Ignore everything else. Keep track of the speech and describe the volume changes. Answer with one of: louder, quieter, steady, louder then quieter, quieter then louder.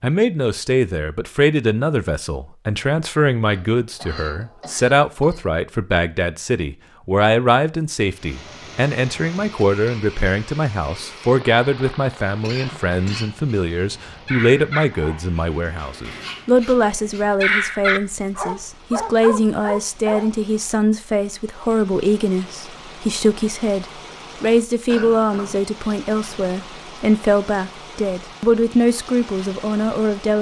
steady.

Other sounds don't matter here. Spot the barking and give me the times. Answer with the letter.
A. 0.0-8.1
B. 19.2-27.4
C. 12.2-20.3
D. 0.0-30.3
C.